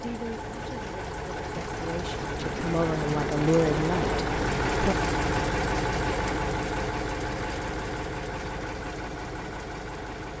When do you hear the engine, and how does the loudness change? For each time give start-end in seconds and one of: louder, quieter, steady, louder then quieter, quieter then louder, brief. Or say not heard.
0.0-10.3 louder then quieter.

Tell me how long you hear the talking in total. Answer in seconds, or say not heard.
5 s.